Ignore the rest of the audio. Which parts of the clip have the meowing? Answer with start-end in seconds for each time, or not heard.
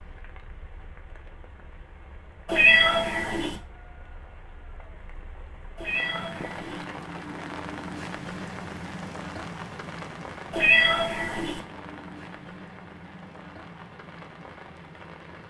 2.5-3.5, 5.8-6.8, 10.5-11.6.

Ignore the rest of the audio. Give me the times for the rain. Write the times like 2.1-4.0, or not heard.
0.0-15.4.